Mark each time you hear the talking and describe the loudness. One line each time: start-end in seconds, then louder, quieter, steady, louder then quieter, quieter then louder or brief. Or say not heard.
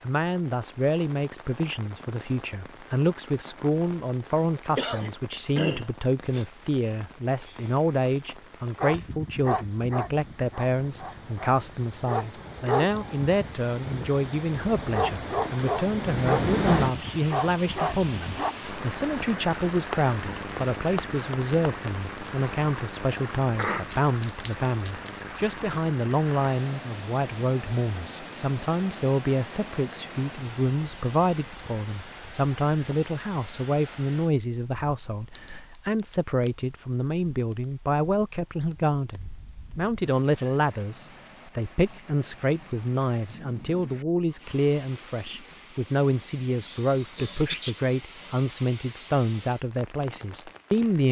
0.0-51.0 steady.